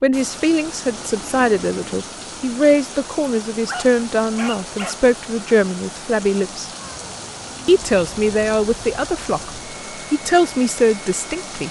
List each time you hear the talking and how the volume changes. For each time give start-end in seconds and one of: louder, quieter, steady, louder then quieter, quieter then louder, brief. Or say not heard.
0.0-6.7 steady
7.7-9.5 brief
10.1-11.6 brief.